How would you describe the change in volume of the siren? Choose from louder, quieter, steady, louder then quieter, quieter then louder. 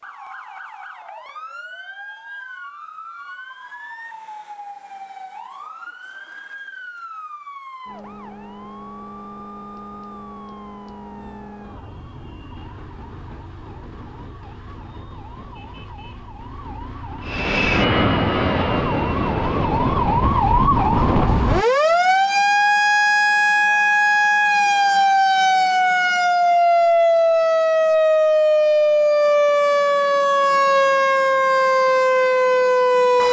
louder.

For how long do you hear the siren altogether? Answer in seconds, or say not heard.
33 s.